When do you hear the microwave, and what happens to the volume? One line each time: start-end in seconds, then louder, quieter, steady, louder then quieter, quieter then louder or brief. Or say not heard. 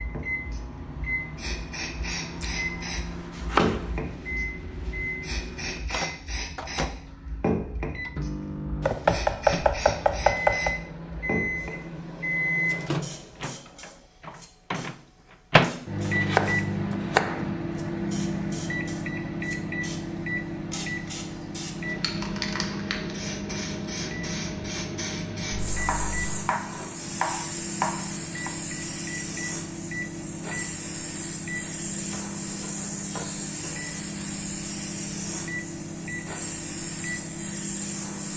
0.0-38.3 louder then quieter.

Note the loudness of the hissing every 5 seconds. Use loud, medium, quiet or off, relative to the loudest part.
loud, loud, medium, quiet, loud, loud, loud, loud.